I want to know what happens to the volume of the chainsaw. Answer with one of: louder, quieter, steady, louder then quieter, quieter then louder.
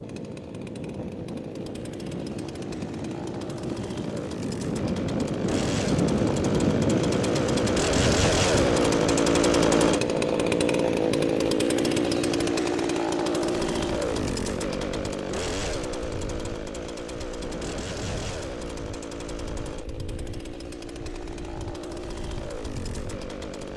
louder then quieter.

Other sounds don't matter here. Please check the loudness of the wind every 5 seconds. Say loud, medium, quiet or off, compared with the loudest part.
medium, loud, medium, quiet, quiet.